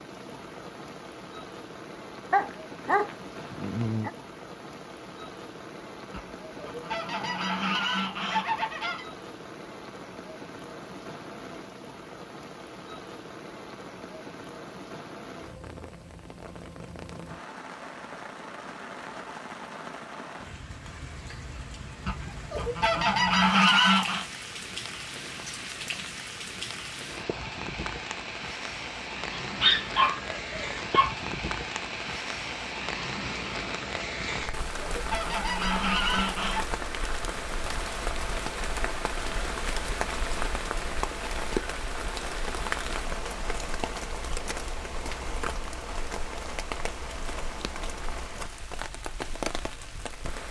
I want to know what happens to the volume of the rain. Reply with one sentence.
The volume of the rain goes up.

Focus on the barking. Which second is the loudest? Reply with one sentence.
The loudest moment of the barking is at 30 seconds.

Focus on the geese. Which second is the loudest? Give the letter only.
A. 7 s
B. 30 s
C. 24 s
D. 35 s
C.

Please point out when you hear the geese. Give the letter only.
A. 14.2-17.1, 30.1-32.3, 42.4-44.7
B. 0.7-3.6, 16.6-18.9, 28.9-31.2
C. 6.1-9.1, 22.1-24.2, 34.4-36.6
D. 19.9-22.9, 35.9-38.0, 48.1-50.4
C.